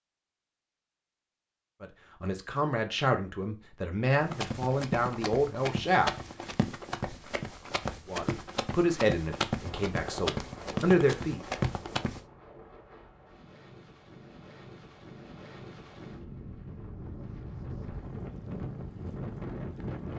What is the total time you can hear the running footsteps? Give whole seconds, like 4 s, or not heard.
8 s.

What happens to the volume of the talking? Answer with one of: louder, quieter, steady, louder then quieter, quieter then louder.
steady.